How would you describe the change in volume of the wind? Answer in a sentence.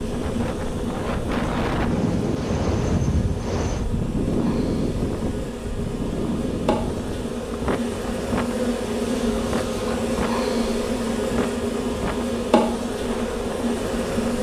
The loudness of the wind goes down.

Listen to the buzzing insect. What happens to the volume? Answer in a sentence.
The loudness of the buzzing insect goes up.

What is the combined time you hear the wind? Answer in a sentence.
You can hear the wind for 14 seconds altogether.